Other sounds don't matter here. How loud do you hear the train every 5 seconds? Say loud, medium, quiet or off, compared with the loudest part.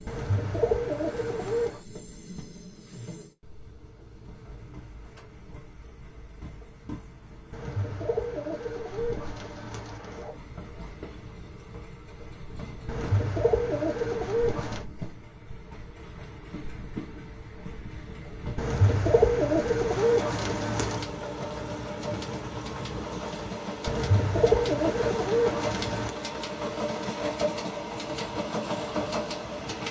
quiet, quiet, quiet, medium, loud, loud.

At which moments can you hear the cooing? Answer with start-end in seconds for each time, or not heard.
0.1-1.8, 7.5-10.3, 12.8-14.8, 18.6-21.1, 23.9-26.1.